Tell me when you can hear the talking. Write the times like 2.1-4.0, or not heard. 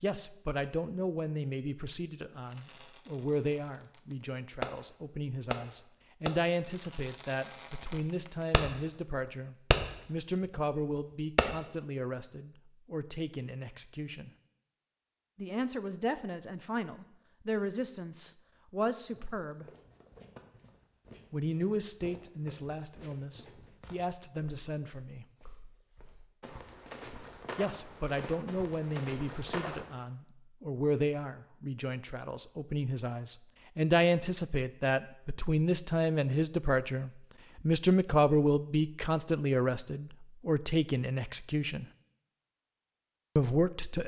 0.0-14.3, 15.3-19.6, 21.3-25.2, 27.6-41.9, 43.4-44.0.